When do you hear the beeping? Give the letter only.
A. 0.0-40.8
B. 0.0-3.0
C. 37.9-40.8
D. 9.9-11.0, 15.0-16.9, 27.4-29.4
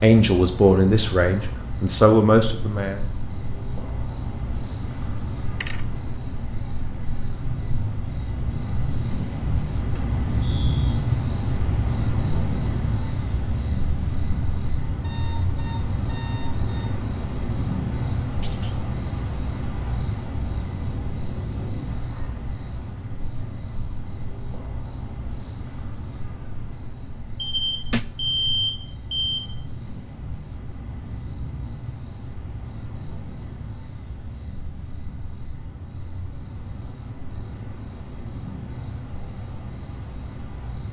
D.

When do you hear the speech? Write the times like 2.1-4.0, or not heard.
0.0-3.0.